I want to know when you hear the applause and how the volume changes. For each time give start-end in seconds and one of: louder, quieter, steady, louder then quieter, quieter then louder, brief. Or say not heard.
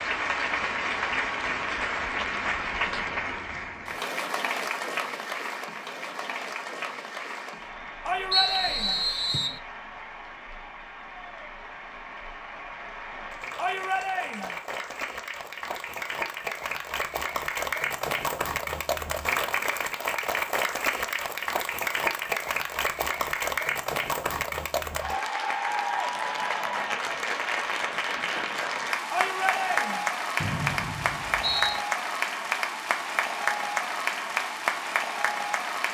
0.0-35.8 quieter then louder.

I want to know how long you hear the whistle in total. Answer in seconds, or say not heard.
3 s.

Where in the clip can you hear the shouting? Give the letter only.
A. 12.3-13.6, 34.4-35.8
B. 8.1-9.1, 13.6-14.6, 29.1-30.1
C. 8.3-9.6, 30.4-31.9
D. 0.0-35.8
B.